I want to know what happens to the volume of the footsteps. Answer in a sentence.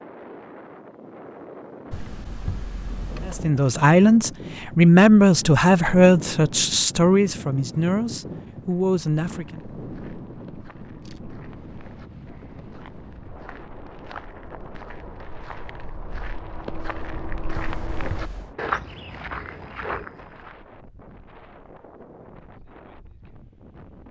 The volume of the footsteps goes up.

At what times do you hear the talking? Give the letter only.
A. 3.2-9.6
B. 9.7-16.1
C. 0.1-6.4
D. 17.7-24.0
A.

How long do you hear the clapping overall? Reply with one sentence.
The clapping can't be heard in this clip.